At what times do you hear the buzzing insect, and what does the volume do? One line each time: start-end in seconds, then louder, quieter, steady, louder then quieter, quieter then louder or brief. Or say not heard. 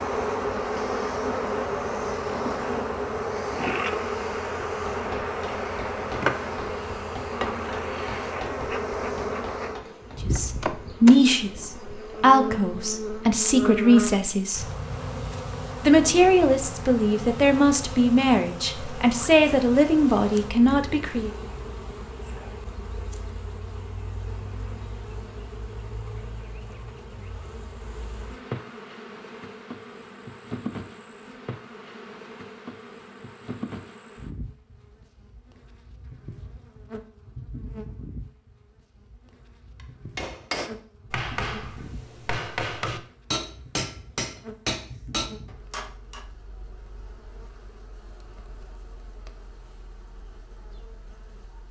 0.0-51.6 quieter.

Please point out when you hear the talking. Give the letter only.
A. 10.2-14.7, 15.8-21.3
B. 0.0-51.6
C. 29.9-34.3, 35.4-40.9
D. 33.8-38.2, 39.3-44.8
A.